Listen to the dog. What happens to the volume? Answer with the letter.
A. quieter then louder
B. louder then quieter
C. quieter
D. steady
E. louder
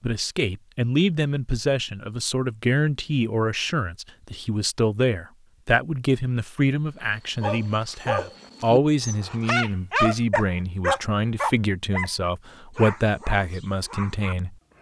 B.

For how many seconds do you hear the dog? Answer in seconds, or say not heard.
8 s.